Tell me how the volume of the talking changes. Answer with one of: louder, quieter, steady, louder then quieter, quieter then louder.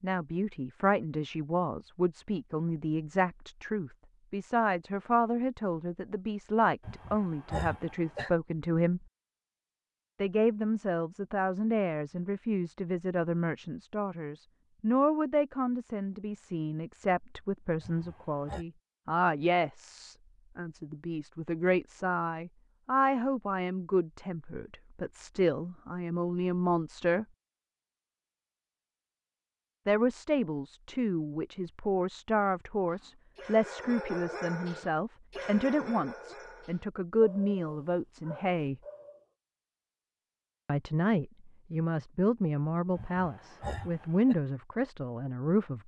steady.